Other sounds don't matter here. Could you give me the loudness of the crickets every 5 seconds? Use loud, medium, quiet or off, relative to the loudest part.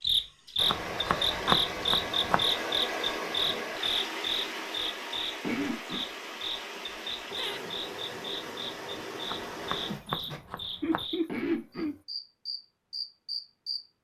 loud, medium, medium.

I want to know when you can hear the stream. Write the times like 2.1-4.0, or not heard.
0.1-10.4.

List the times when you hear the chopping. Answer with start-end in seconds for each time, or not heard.
0.7-2.5, 9.2-11.1.